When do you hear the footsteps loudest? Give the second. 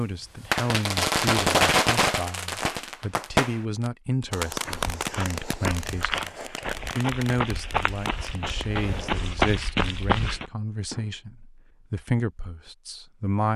9 s.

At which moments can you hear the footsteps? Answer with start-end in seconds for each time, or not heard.
4.5-10.4.